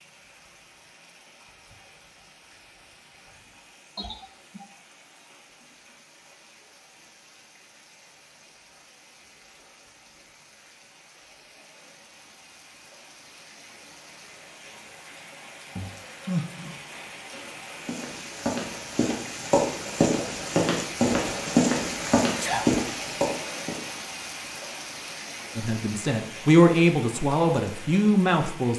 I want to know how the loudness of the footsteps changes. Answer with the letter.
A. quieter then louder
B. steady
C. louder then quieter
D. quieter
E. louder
E.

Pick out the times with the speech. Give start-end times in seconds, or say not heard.
25.6-28.7.